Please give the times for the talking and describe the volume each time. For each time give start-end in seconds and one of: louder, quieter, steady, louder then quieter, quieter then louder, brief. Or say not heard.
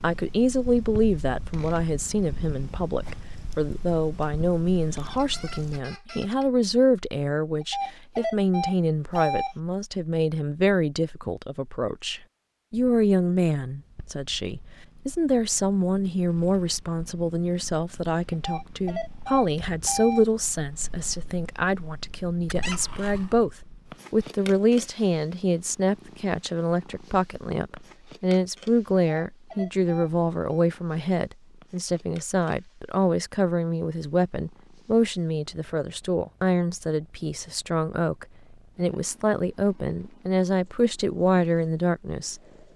0.0-42.7 steady.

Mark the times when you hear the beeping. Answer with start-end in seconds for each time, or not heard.
7.6-9.6, 18.3-20.2, 28.9-30.6.